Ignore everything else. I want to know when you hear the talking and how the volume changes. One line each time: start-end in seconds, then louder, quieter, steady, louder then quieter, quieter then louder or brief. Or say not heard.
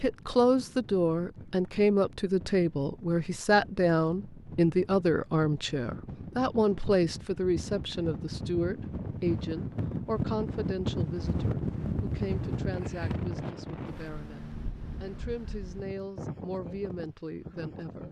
0.0-18.0 quieter.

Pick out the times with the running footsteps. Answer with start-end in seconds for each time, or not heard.
not heard.